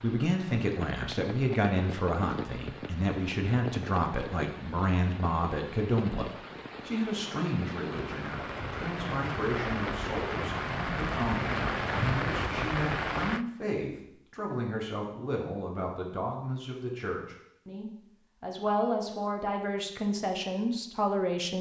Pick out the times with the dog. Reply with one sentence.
You can't hear the dog here.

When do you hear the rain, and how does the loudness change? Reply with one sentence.
You can hear the rain from 0.0 to 13.4 s, getting louder.